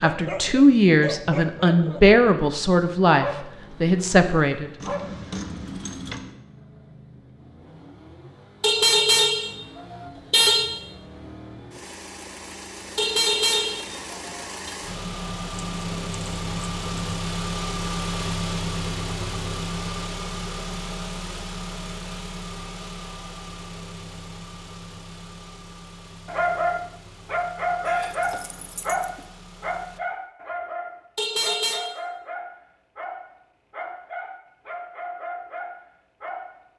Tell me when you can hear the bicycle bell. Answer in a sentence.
You can't hear the bicycle bell here.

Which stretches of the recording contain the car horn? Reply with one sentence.
The car horn can be heard from 8.6 to 10.7 s, from 12.9 to 14.7 s and from 31.1 to 31.9 s.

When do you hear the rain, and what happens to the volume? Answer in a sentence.
The rain can't be heard in this clip.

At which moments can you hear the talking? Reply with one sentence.
The talking can be heard from 0.0 to 4.7 s.